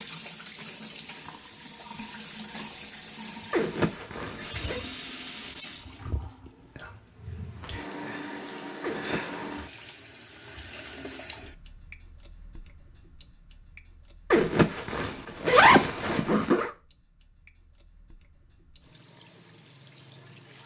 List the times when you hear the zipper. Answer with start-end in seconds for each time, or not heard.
3.5-4.8, 8.8-9.3, 14.3-16.7.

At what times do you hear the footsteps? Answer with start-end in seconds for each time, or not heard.
not heard.